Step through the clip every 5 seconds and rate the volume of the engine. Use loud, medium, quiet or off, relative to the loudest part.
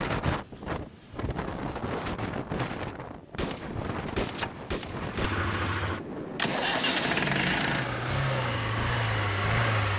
off, loud.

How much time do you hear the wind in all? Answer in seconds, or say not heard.
10 s.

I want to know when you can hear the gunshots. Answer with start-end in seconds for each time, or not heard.
3.4-5.3.